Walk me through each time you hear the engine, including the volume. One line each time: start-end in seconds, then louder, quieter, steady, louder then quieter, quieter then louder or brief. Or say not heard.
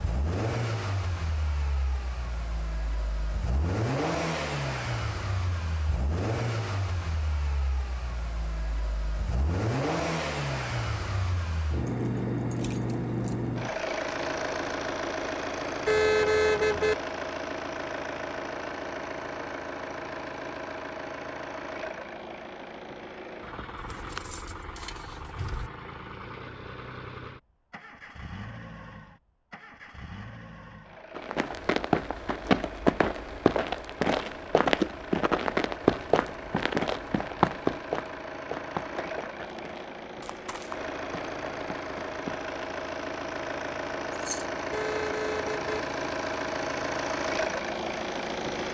0.0-48.7 quieter then louder.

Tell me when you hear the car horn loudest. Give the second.
16 s.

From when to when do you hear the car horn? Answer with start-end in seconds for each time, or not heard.
15.8-16.9, 44.7-45.8.